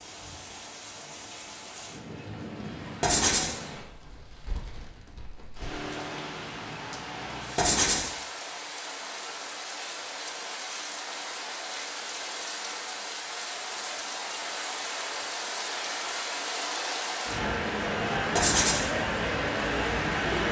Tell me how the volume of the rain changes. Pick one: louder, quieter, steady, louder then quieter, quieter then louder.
louder.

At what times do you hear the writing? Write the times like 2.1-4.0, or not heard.
3.0-3.5, 7.5-8.1, 18.4-18.9.